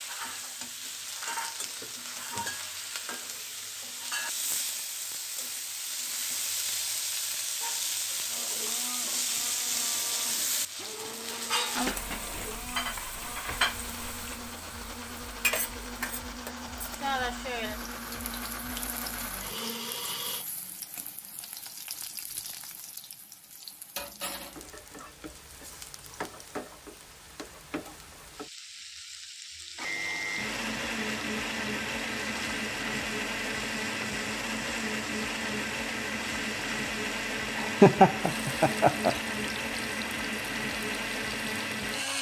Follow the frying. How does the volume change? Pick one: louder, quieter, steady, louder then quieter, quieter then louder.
quieter.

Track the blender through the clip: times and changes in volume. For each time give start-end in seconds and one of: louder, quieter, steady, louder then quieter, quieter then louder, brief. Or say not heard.
8.2-20.4 louder
29.8-42.1 steady.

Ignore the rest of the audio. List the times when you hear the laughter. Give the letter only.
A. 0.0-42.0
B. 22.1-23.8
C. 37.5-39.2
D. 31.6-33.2
C.